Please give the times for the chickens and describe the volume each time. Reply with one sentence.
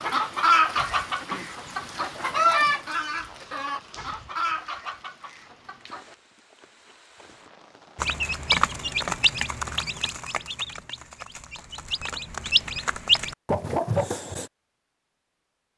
The chickens can be heard from 0.0 to 6.2 s, getting quieter; and from 8.0 to 14.5 s, getting quieter then louder.